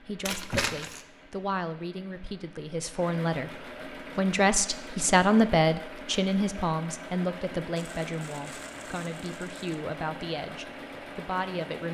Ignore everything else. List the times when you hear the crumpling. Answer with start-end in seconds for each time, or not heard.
0.2-1.1, 7.8-9.8.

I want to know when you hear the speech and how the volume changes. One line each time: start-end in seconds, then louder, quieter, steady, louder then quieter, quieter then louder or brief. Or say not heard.
0.0-11.8 louder then quieter.